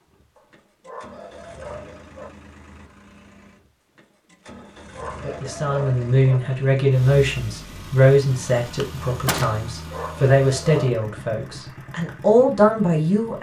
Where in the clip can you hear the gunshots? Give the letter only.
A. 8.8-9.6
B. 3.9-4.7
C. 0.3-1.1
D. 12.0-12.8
A.